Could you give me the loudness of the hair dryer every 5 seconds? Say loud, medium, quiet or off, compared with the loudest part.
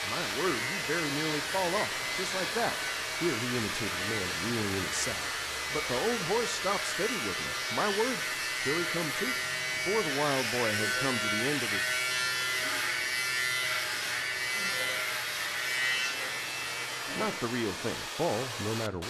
loud, loud, medium, loud.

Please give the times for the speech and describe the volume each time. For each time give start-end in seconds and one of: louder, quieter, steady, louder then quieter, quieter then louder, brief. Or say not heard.
0.0-11.8 steady
17.1-19.0 brief.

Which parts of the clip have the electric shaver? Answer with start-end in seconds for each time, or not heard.
0.0-17.6.